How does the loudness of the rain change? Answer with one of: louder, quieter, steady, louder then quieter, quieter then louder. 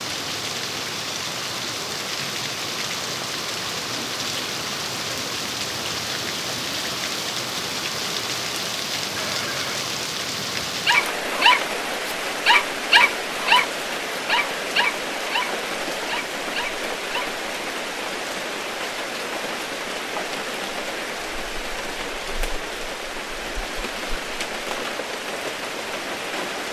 steady.